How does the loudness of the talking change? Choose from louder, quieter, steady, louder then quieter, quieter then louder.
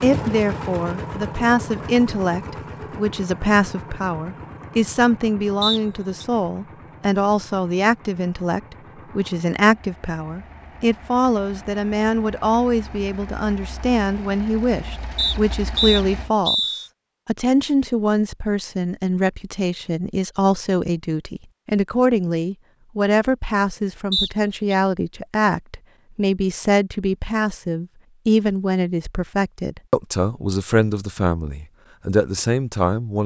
steady.